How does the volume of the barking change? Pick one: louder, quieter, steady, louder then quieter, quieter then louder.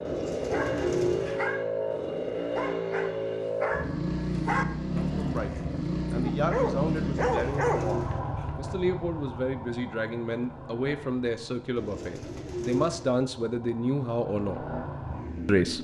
louder.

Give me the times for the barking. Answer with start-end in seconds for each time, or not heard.
0.4-8.4.